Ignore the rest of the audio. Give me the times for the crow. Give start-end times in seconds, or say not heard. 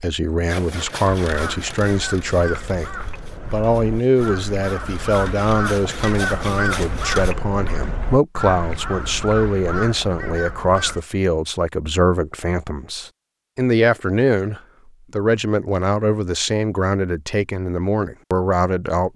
1.2-11.0.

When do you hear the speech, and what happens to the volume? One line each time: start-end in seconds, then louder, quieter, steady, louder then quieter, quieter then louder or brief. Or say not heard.
0.0-19.1 steady.